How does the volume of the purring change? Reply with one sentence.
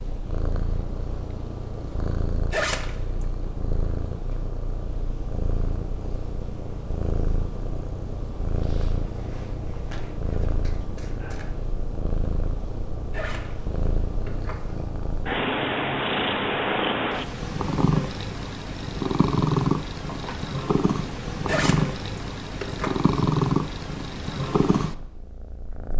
The volume of the purring goes up.